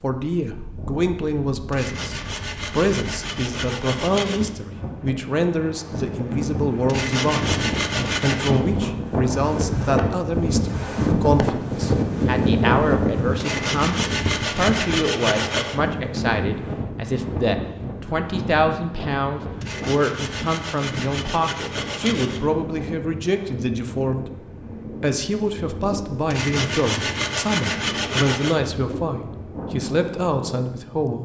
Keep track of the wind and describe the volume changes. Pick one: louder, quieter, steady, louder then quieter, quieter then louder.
louder then quieter.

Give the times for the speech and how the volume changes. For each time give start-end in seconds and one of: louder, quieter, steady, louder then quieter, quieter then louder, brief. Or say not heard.
0.0-7.6 steady
8.2-31.2 steady.